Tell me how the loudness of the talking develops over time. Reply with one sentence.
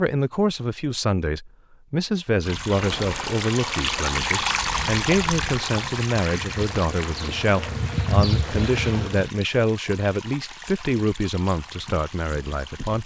The volume of the talking stays about the same.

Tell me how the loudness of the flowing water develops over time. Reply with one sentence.
The loudness of the flowing water goes down.